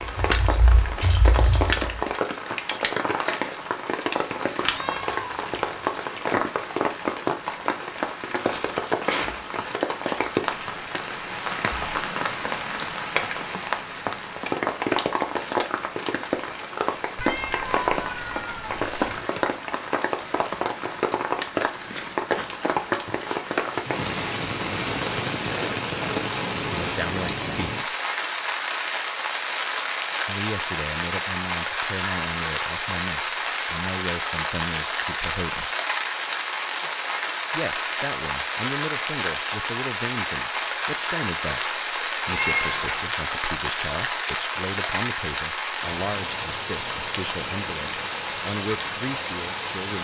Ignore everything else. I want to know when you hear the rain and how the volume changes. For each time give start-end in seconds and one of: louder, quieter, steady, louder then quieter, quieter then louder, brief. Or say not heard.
0.0-49.9 steady.